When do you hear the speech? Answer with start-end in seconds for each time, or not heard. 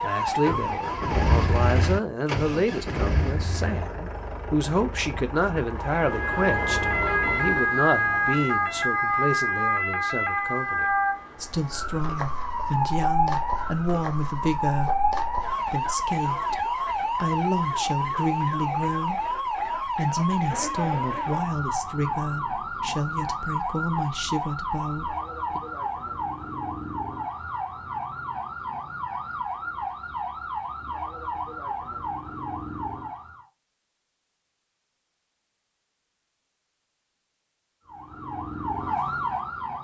0.0-25.6.